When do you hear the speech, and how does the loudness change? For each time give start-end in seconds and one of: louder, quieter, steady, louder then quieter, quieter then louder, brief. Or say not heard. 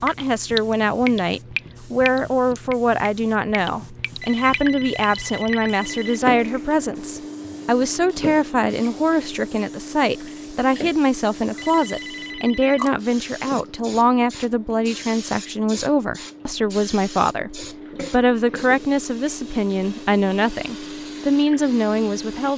0.0-22.5 steady.